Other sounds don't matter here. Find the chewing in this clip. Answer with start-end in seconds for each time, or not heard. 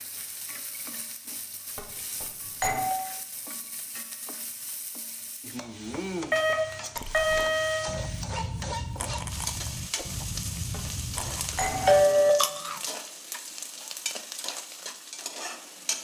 7.0-12.8.